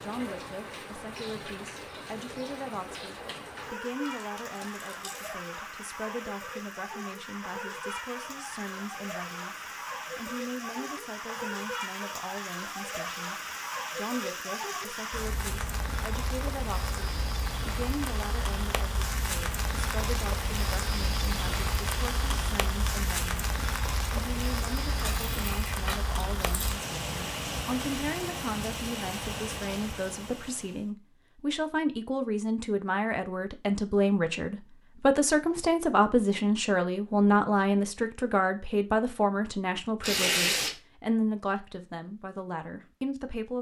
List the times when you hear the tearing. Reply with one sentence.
You can hear the tearing from 4.0 to 5.3 s, from 24.8 to 26.8 s and from 40.0 to 40.8 s.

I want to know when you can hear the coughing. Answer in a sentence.
You can't hear the coughing here.